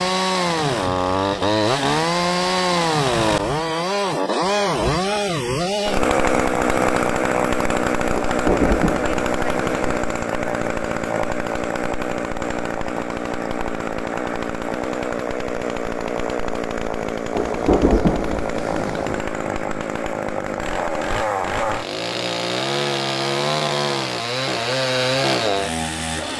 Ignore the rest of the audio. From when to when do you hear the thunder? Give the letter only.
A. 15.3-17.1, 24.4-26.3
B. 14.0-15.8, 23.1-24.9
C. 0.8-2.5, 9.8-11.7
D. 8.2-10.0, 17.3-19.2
D.